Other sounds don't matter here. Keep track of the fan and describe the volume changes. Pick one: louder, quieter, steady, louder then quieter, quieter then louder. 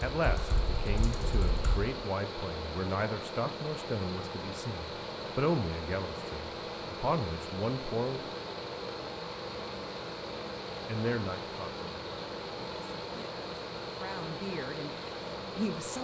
steady.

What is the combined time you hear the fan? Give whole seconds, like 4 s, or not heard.
16 s.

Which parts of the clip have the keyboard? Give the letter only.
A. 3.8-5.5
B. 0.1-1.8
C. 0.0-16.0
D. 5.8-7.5
B.